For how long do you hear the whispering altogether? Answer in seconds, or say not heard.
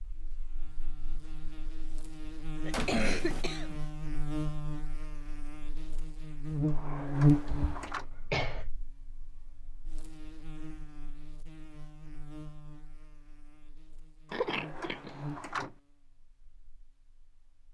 not heard.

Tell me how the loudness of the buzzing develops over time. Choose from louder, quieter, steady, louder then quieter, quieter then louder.
louder then quieter.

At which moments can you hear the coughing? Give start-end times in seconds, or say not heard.
2.6-3.8, 7.5-8.7, 14.3-15.2.